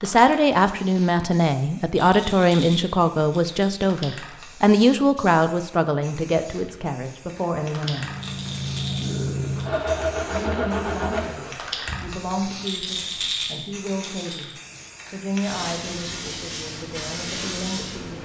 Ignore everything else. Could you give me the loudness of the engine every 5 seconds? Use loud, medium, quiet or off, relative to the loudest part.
off, loud, loud, off.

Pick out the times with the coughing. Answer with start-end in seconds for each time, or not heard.
not heard.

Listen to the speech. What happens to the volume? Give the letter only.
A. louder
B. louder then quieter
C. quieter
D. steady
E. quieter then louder
C.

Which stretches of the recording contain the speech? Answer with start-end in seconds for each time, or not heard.
0.0-8.1, 10.3-18.1.